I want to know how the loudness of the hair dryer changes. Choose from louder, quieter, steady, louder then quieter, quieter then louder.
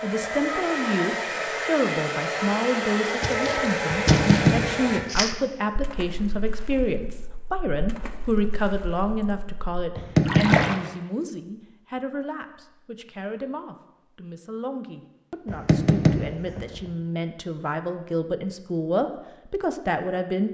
steady.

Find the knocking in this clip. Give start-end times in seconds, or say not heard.
3.9-5.0, 9.9-10.7, 15.4-16.9.